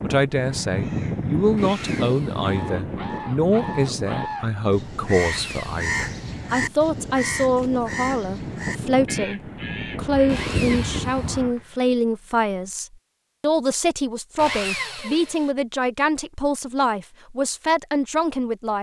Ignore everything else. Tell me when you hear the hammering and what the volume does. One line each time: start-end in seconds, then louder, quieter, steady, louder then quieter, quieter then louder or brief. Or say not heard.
not heard.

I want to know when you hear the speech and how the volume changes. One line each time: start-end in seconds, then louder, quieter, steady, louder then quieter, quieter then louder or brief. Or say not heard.
0.0-18.7 steady.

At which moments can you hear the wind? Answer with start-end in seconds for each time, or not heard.
0.0-11.6.